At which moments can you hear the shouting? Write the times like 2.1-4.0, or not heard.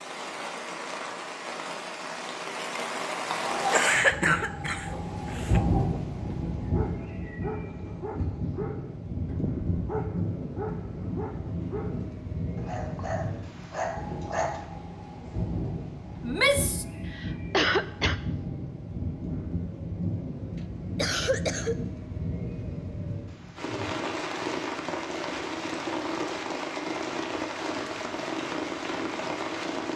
16.2-16.9.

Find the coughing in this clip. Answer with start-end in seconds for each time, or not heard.
3.7-5.6, 17.1-18.1, 20.9-21.8.